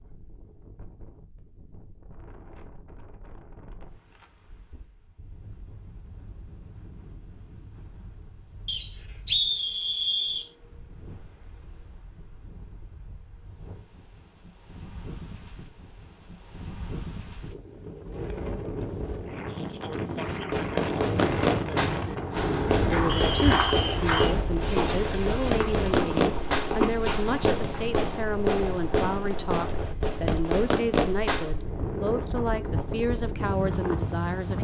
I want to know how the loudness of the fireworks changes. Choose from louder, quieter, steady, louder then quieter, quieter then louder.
steady.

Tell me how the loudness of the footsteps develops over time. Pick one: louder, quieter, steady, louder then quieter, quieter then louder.
quieter then louder.